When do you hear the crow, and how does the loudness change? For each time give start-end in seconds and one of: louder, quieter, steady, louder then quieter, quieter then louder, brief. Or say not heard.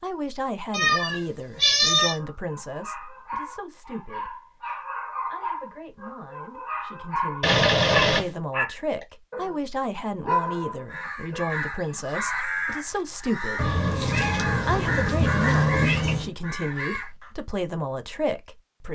10.8-17.3 steady.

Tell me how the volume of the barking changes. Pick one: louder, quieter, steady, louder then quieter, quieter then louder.
louder.